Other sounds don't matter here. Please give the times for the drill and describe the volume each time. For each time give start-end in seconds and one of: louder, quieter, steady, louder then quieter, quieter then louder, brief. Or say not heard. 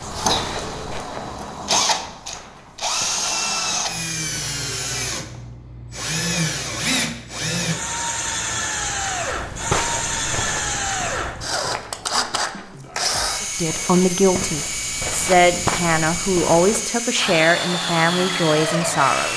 0.0-19.3 steady.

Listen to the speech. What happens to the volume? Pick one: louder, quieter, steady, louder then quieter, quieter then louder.
steady.